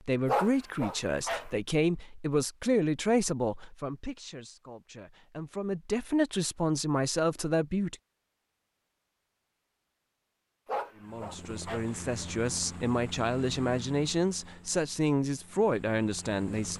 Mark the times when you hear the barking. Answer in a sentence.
You can hear the barking from 0.2 to 1.5 s and from 10.7 to 11.9 s.